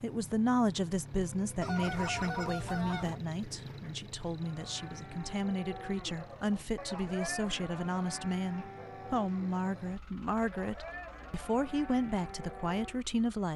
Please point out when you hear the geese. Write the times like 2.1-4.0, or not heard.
1.6-3.2.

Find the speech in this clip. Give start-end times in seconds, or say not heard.
0.0-13.5.